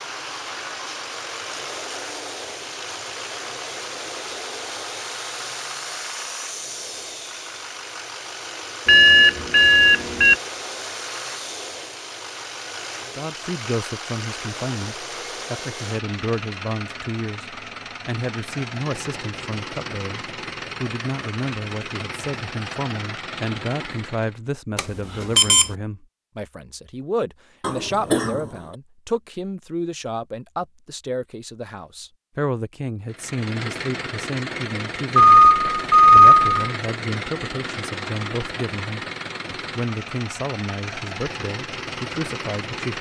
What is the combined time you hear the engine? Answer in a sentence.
You can hear the engine for 34 seconds altogether.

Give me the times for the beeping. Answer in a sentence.
The beeping can be heard from 8.8 to 10.3 s, from 24.8 to 25.7 s and from 35.1 to 36.7 s.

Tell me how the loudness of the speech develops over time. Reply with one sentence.
The loudness of the speech stays about the same.